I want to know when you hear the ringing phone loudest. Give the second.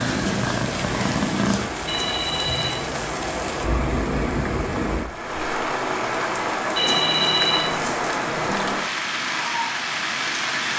7 s.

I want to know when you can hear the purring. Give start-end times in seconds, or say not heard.
0.0-1.7.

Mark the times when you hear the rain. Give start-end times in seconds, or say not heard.
0.0-10.7.